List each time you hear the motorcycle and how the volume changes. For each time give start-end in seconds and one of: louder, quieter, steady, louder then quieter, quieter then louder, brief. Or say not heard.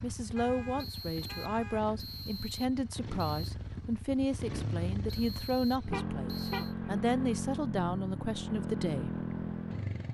0.0-10.0 louder.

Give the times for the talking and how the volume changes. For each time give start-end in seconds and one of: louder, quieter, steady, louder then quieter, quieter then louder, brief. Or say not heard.
0.0-9.2 steady.